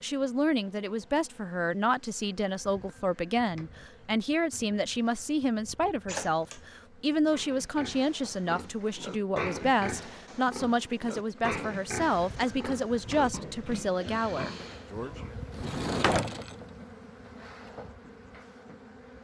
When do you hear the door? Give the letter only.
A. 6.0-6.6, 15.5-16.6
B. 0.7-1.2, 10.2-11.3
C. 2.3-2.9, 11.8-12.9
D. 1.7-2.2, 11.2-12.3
A.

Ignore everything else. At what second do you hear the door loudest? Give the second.
16 s.